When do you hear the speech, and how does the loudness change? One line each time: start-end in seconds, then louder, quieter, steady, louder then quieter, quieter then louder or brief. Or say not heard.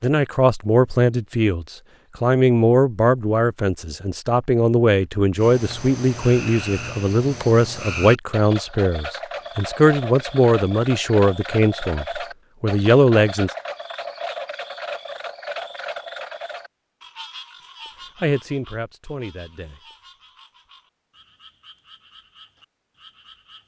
0.0-13.5 steady
18.2-19.8 brief.